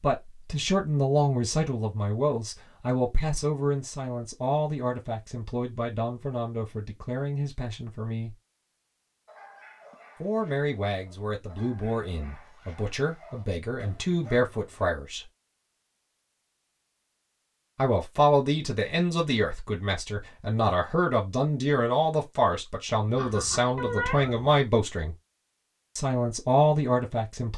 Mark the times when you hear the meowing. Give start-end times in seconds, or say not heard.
23.1-24.5.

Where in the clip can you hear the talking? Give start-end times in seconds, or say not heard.
0.0-8.3, 10.2-15.2, 17.8-25.1, 25.9-27.5.